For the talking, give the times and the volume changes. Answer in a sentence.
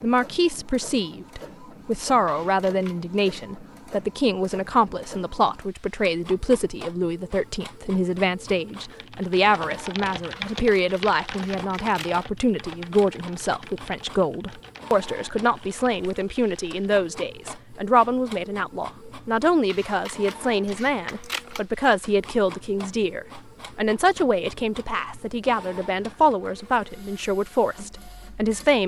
You can hear the talking from 0.0 to 28.8 s, at a steady volume.